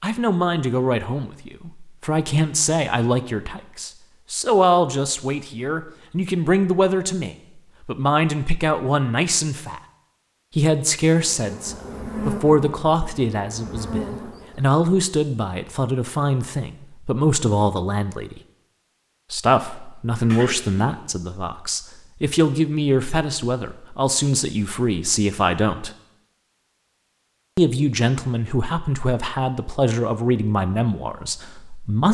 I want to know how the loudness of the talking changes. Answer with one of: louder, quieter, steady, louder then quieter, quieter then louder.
steady.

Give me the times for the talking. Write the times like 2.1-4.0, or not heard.
0.0-9.8, 10.6-18.4, 19.3-25.9, 27.6-32.0.